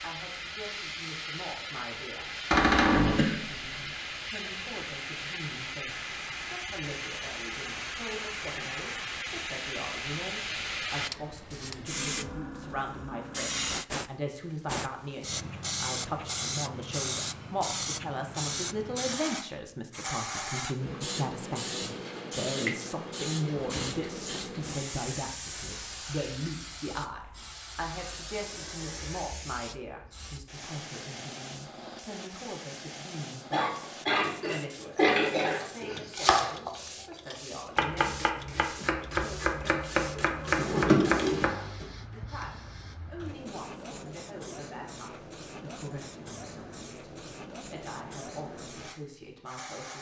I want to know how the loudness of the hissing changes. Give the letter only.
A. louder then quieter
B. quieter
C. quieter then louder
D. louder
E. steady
B.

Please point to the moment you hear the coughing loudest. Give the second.
35 s.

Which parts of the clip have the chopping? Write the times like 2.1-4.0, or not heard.
35.0-41.5.